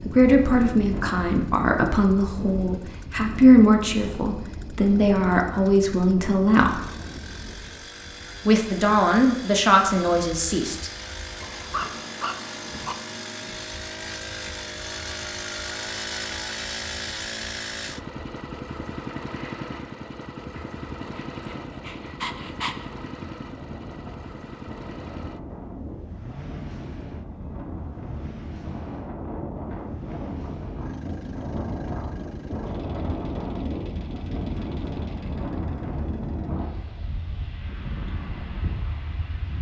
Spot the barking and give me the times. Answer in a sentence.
You can hear the barking from 11.4 to 12.9 s and from 21.0 to 22.9 s.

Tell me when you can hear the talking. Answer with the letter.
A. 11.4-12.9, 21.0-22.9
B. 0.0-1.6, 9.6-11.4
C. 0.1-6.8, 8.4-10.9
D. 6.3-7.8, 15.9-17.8
C.